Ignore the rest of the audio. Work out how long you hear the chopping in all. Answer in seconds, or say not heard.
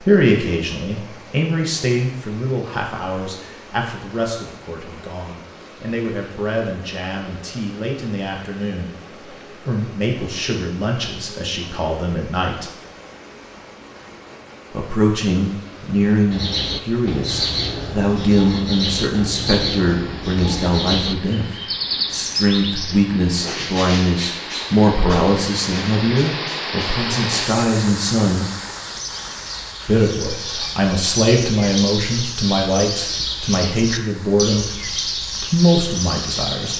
not heard.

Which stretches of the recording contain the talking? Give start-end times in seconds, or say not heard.
0.0-12.7, 14.8-21.5, 22.1-28.5, 29.9-36.7.